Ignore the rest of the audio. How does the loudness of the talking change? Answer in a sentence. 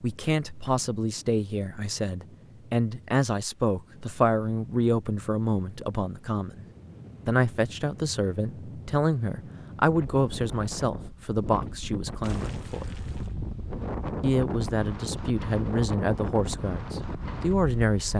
The loudness of the talking stays about the same.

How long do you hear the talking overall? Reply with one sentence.
The talking can be heard for 16 seconds in total.